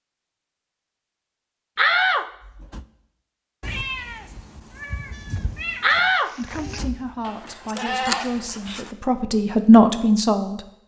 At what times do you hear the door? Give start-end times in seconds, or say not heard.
1.8-2.9, 5.8-7.5.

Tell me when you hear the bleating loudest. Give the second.
8 s.